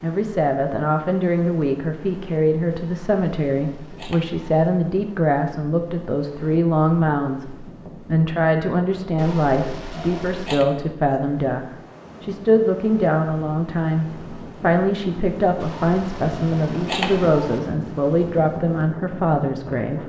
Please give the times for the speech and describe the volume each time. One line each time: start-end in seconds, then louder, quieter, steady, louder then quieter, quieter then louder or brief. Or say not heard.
0.0-20.0 steady.